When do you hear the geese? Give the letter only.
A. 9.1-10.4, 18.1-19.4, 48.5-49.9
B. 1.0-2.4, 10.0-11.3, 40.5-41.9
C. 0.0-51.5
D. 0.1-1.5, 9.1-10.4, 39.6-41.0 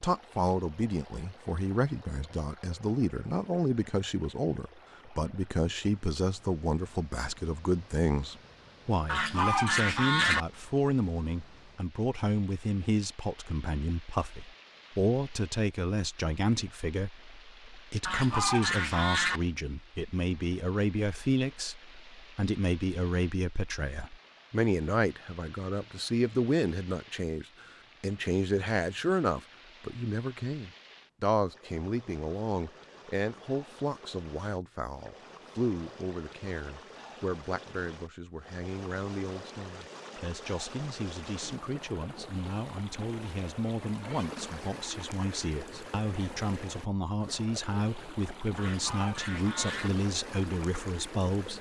A.